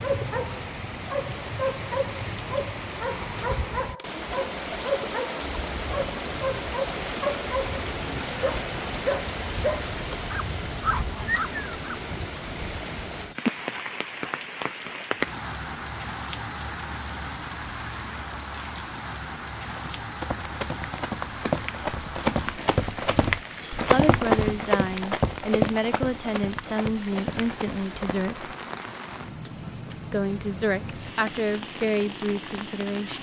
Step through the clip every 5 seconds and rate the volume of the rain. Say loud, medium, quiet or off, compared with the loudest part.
loud, loud, loud, loud, medium, medium, medium.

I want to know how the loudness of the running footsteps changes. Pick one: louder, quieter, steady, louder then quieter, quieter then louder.
louder then quieter.